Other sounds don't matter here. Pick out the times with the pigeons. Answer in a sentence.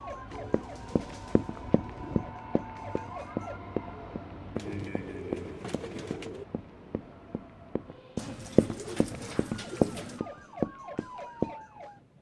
The pigeons can be heard from 0.5 to 2.3 s, from 4.5 to 6.5 s and from 8.2 to 10.2 s.